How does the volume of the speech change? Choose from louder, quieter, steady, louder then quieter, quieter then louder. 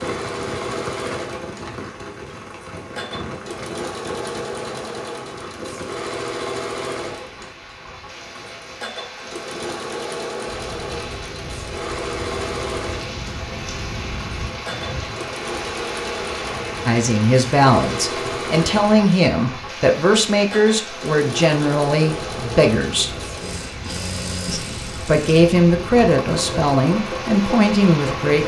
steady.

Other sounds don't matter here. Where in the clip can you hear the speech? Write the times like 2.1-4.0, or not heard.
16.9-23.1, 24.4-28.4.